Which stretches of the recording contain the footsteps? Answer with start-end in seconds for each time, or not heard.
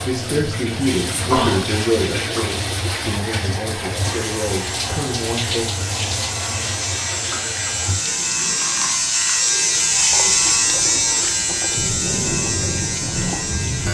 not heard.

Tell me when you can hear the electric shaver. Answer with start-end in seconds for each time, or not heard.
4.2-13.8.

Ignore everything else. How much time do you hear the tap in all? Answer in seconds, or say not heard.
14 s.